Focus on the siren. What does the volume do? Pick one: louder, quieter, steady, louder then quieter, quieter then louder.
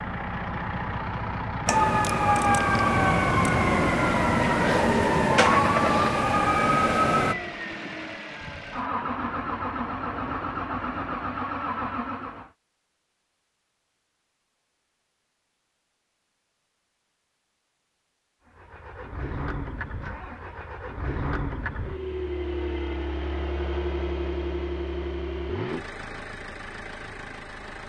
steady.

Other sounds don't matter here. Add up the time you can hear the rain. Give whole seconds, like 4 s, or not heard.
not heard.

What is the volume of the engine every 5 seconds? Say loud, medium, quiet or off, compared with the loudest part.
loud, loud, loud, medium, loud, medium.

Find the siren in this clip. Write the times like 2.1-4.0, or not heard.
1.6-7.3.